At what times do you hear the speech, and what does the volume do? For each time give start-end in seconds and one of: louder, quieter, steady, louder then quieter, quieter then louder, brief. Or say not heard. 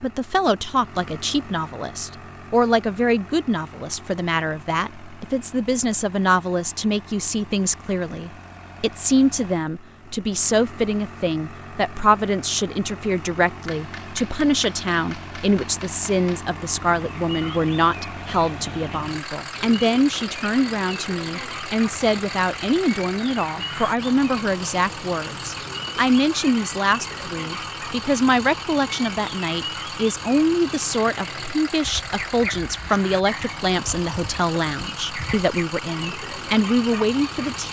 0.0-37.6 steady.